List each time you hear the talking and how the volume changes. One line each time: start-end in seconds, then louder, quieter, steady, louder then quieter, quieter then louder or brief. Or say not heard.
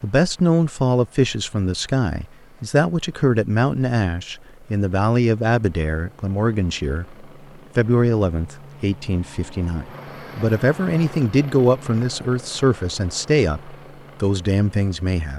0.0-15.3 steady.